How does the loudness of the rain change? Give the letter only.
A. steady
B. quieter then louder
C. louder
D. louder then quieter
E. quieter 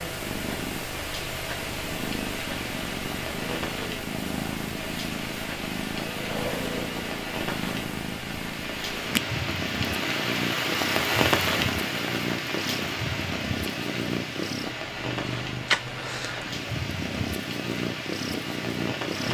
D.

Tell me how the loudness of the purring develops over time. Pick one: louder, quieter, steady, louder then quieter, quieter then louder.
steady.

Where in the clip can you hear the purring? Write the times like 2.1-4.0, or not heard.
0.0-19.2.